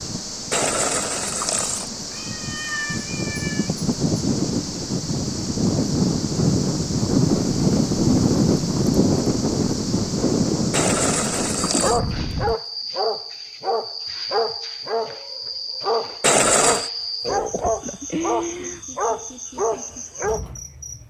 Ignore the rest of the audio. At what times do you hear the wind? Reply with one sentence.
The wind can be heard from 0.0 to 12.6 s.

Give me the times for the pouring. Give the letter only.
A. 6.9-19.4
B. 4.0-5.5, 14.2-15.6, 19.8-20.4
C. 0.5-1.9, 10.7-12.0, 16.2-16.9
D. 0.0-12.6
C.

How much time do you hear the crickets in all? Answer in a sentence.
The crickets can be heard for 21 seconds in total.